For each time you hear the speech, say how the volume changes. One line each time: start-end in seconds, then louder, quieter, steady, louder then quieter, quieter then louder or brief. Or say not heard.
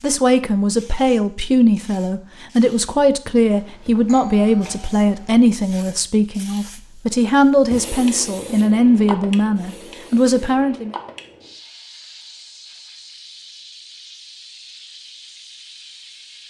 0.0-10.9 steady.